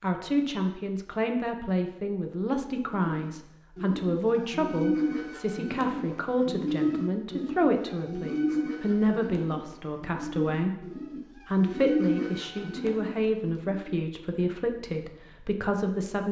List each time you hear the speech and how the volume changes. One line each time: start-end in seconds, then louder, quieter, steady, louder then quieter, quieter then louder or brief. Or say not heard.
0.0-16.2 steady.